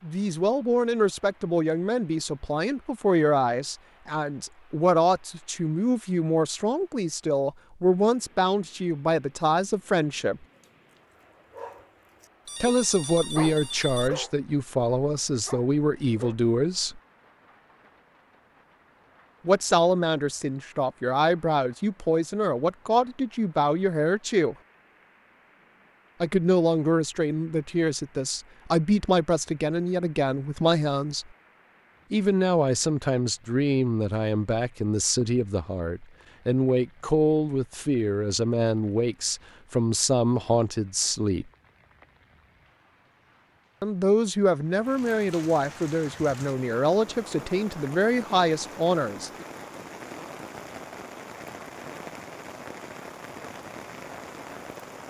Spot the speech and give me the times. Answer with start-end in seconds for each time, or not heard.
0.0-10.4, 12.6-17.0, 19.4-24.6, 26.2-31.2, 32.1-41.5, 43.8-49.5.